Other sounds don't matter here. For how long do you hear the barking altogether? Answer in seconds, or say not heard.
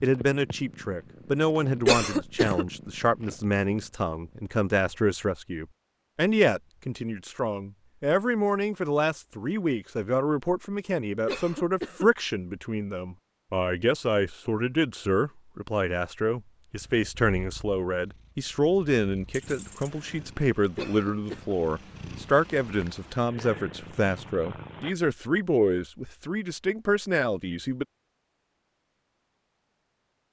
not heard.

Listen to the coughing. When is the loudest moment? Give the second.
2 s.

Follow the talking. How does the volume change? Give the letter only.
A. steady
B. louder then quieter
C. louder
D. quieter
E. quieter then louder
A.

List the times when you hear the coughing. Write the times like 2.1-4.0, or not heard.
1.9-2.6, 11.2-12.1, 20.8-21.6.